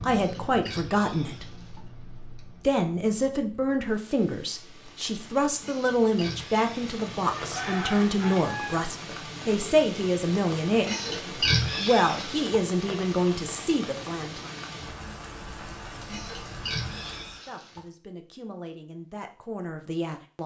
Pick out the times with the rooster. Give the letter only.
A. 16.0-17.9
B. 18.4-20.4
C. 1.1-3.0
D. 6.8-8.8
D.